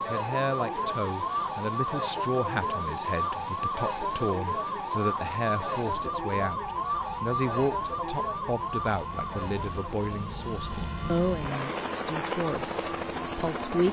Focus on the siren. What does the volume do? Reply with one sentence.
The loudness of the siren goes down.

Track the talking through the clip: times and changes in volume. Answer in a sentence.
The talking can be heard from 0.1 to 13.8 s, at a steady volume.